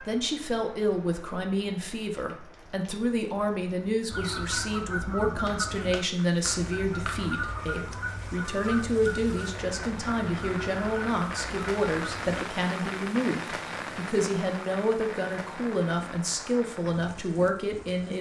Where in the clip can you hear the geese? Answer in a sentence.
The geese can be heard from 4.1 to 12.3 s.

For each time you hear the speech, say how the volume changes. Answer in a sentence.
You can hear the speech from 0.0 to 18.1 s, at a steady volume.